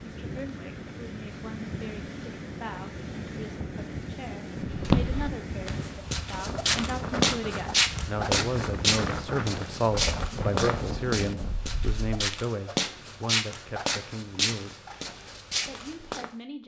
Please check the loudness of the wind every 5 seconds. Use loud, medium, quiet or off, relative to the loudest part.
loud, loud, loud, off.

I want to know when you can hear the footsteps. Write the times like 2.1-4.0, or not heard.
4.7-16.2.